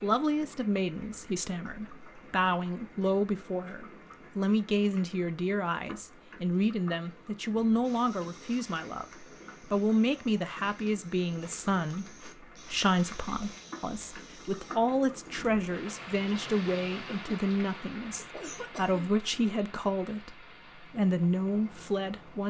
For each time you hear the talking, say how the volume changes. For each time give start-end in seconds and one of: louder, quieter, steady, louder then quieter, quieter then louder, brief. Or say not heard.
0.0-22.4 steady.